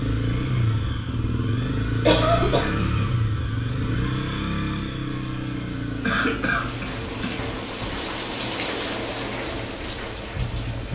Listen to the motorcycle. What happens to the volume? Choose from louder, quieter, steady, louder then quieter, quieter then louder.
quieter.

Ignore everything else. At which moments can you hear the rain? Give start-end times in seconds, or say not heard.
5.0-10.8.